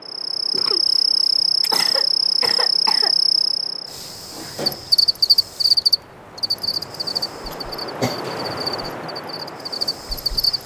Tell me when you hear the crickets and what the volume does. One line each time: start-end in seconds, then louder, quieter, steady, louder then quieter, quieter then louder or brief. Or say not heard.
0.1-10.6 quieter.